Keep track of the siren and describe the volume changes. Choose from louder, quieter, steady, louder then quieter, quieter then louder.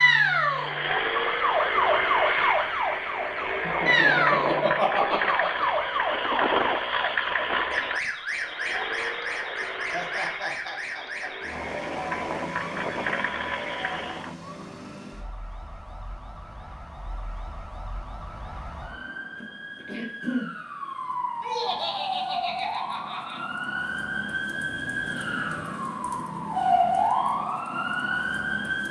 quieter then louder.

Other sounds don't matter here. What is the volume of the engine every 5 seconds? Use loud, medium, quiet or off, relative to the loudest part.
loud, loud, medium, off, off, off.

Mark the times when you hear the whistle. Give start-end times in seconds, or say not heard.
not heard.